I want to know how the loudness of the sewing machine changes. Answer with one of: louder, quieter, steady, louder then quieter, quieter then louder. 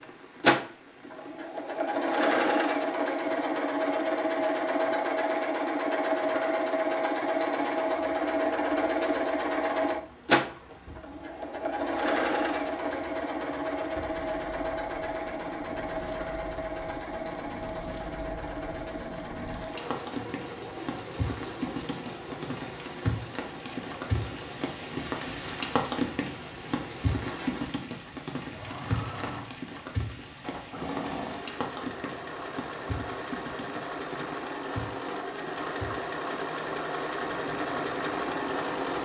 quieter then louder.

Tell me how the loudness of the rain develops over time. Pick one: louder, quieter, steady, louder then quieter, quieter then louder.
louder then quieter.